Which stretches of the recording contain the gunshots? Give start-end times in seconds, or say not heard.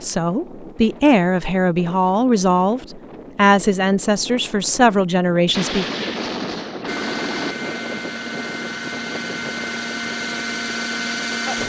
5.5-7.5.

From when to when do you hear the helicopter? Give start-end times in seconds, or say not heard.
6.8-11.6.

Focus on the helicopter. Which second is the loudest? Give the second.
11 s.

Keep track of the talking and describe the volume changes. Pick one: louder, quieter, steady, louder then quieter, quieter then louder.
steady.